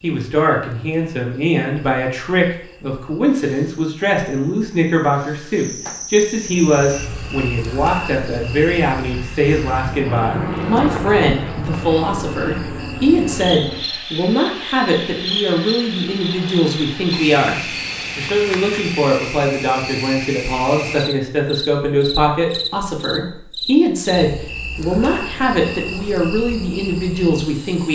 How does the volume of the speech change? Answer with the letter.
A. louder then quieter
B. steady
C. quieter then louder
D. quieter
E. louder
B.